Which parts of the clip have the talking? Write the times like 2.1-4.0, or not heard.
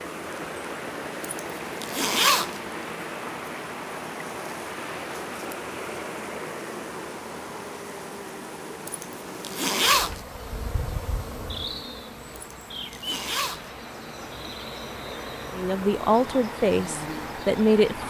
15.5-18.0.